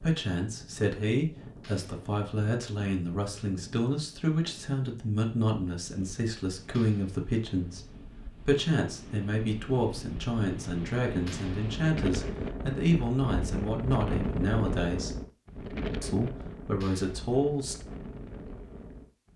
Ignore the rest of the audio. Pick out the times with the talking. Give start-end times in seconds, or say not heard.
0.0-7.8, 8.4-15.2, 16.0-17.8.